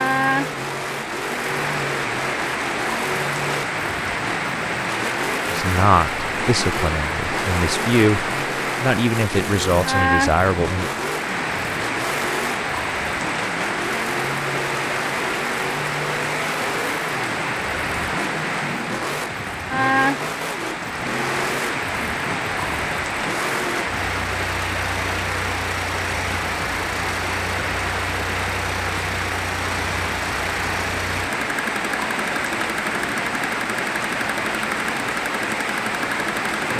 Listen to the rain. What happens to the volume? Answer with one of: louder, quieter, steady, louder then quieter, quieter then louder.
steady.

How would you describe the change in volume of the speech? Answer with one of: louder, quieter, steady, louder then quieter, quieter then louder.
quieter then louder.